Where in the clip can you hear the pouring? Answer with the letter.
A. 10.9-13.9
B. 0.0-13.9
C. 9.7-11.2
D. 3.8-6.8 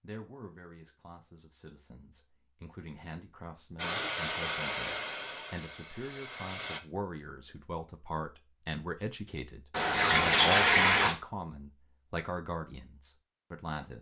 C.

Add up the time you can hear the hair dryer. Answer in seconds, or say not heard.
3 s.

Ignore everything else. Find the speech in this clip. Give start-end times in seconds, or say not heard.
0.0-13.9.